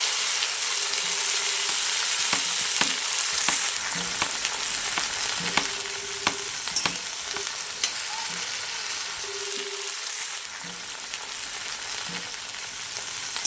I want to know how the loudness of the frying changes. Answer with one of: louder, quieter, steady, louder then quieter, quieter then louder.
quieter.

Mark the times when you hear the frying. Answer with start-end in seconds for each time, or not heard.
0.0-13.4.